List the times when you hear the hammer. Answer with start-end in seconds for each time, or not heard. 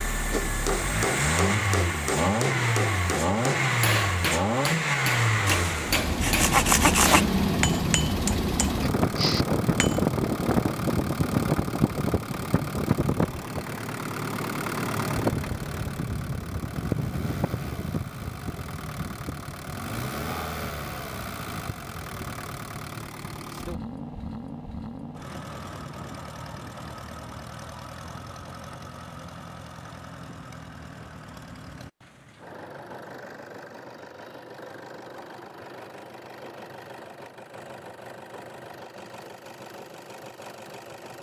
0.3-10.1.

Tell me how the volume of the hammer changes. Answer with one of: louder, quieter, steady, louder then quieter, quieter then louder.
steady.